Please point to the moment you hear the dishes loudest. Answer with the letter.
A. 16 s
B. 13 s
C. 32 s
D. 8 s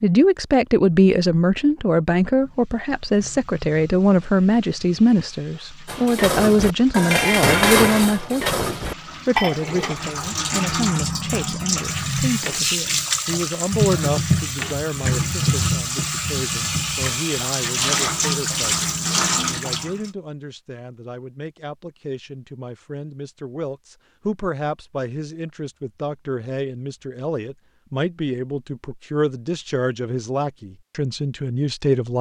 D.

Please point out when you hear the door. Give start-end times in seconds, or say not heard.
not heard.